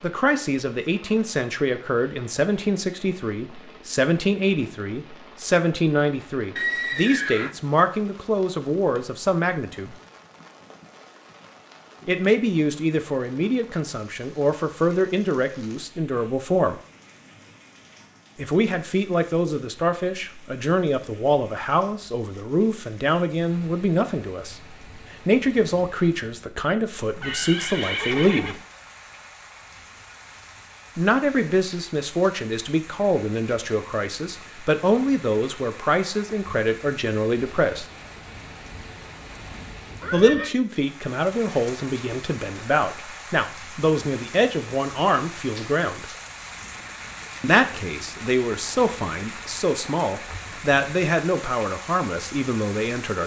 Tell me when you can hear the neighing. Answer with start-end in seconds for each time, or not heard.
6.5-7.5, 27.0-28.6, 39.9-40.5.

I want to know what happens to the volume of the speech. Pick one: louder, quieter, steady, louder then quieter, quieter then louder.
steady.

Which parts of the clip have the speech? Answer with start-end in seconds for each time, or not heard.
0.0-9.9, 12.1-16.8, 18.4-28.6, 30.9-37.9, 40.1-46.0, 47.4-53.2.